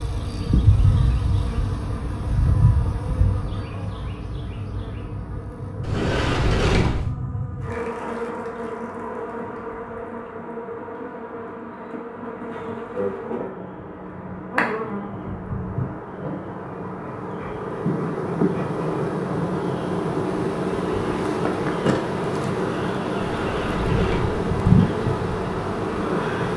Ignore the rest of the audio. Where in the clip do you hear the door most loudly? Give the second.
7 s.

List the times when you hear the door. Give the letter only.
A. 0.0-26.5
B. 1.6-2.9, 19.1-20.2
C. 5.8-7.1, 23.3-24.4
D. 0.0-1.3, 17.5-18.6
C.